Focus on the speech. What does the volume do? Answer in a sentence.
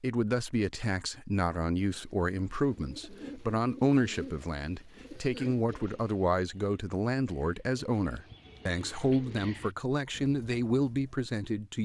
The loudness of the speech stays about the same.